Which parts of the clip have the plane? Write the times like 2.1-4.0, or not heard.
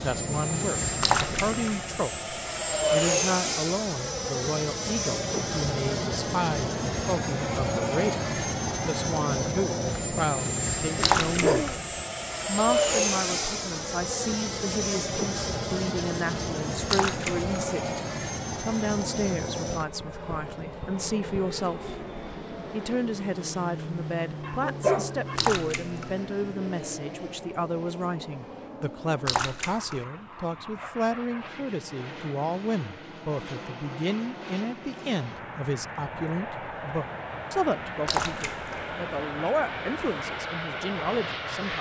0.0-41.7.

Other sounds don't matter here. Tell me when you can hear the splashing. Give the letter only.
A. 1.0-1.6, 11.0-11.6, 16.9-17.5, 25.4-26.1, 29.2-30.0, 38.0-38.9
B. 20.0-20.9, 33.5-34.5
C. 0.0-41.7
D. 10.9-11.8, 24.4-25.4
A.